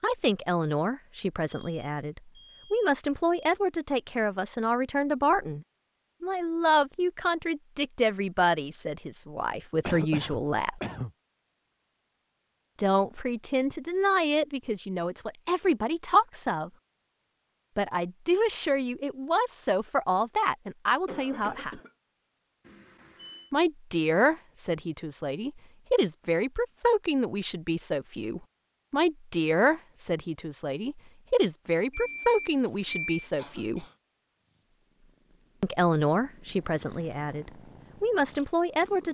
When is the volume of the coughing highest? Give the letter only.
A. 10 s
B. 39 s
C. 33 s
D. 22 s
A.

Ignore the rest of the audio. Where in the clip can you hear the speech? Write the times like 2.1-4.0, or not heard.
0.0-10.8, 12.8-16.7, 17.8-21.8, 23.5-33.9, 35.6-39.0.